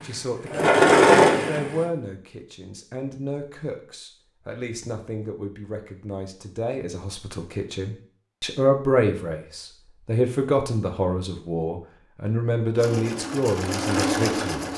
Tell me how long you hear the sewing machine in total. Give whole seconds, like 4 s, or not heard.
4 s.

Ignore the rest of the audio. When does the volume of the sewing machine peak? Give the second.
1 s.